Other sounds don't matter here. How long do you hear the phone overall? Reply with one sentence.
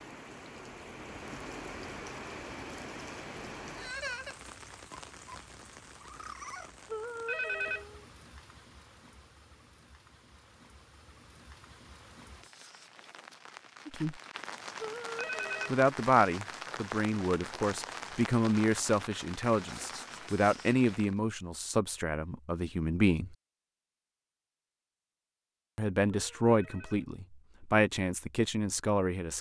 The phone can be heard for 3 seconds in total.